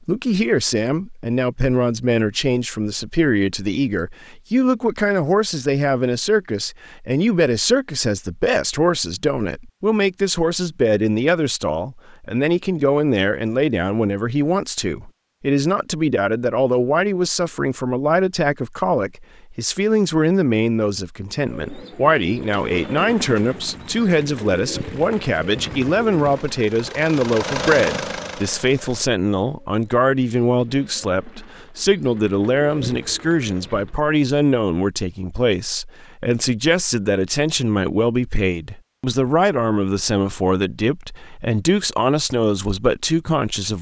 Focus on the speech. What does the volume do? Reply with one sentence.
The loudness of the speech stays about the same.